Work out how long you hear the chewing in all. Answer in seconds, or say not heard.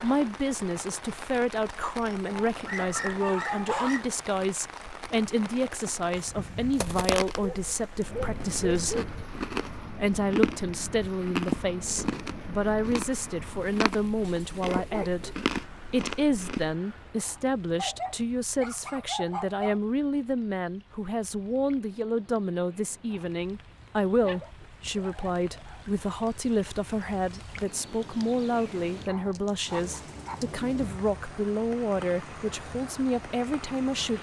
10 s.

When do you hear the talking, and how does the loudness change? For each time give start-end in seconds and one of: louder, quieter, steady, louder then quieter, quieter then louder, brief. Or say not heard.
0.0-9.0 steady
9.8-34.1 steady.